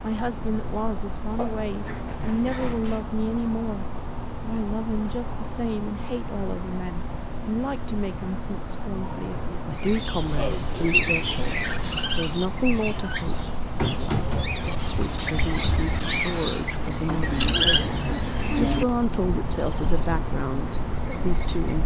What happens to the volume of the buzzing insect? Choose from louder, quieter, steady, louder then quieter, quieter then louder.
steady.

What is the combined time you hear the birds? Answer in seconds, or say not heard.
12 s.